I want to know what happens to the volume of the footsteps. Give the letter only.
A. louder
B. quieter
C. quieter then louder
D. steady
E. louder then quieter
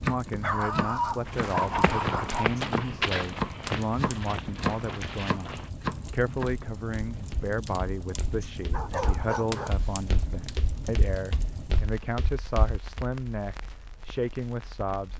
B.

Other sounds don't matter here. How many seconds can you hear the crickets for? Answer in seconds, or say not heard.
not heard.